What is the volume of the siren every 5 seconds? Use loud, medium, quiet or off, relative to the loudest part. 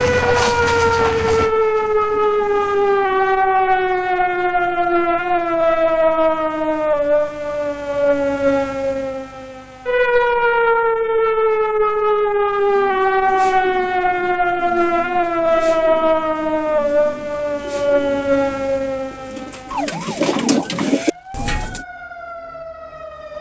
loud, loud, loud, loud, quiet.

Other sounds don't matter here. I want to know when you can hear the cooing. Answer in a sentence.
You can hear the cooing from 12.6 to 21.9 s.